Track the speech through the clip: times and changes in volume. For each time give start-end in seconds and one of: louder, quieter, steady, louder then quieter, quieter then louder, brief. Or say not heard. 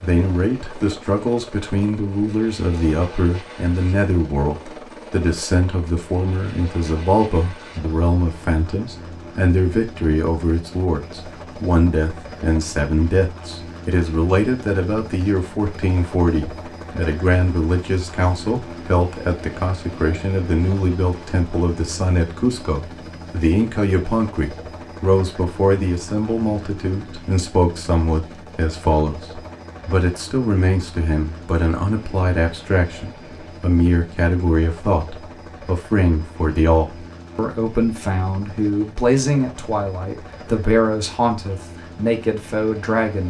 0.0-43.2 steady.